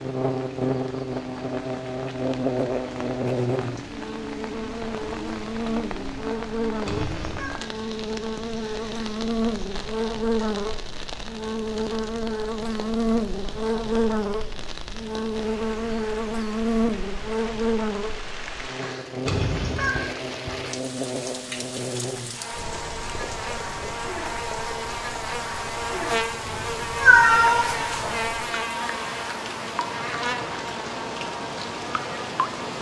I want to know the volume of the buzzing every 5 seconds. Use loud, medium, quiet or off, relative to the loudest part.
loud, loud, loud, loud, medium, loud, medium.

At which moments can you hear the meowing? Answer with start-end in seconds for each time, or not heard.
6.8-7.5, 19.2-19.9, 26.4-28.1.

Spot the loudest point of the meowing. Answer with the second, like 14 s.
27 s.